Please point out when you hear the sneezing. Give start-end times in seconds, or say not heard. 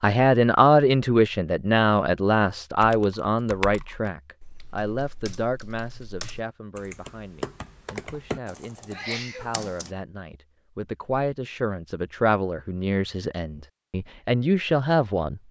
8.9-9.7.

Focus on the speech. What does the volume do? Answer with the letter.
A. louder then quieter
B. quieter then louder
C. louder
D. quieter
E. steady
B.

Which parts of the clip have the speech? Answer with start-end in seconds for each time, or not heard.
0.0-15.4.